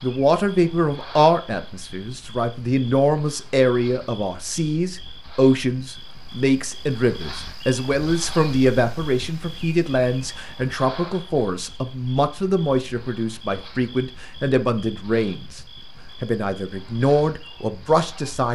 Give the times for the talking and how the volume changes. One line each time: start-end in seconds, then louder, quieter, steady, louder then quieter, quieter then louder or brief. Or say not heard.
0.0-15.6 steady
16.2-18.5 brief.